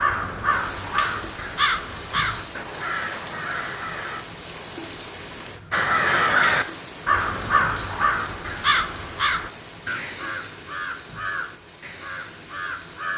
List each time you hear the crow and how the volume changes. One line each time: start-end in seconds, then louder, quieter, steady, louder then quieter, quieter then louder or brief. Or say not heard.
0.0-4.2 quieter
5.7-13.1 quieter.